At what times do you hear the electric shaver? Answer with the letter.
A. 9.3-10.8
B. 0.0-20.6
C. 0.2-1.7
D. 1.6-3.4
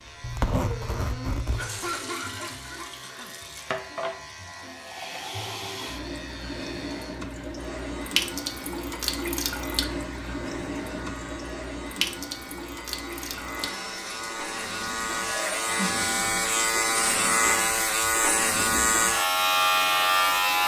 B.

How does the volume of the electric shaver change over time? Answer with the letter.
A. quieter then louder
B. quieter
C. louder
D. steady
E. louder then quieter
C.